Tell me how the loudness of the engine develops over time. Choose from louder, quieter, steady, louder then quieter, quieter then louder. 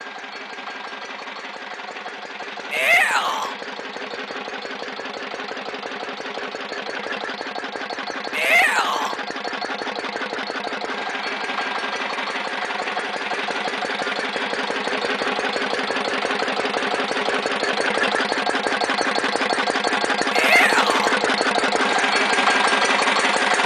louder.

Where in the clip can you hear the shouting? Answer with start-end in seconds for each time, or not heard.
2.7-3.5, 8.3-9.2, 20.3-21.1.